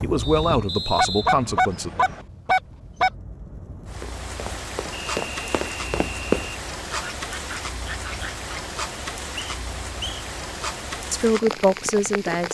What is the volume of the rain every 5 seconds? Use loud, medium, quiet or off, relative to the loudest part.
medium, loud, loud.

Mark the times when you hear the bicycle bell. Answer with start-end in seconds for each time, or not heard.
not heard.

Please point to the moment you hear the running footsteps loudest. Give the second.
6 s.